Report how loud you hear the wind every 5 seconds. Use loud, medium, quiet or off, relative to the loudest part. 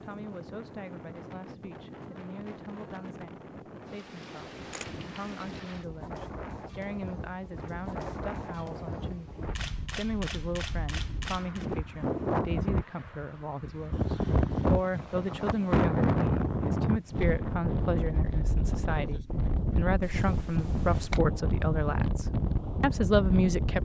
quiet, medium, loud, loud, loud.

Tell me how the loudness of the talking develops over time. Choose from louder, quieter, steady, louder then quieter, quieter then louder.
louder.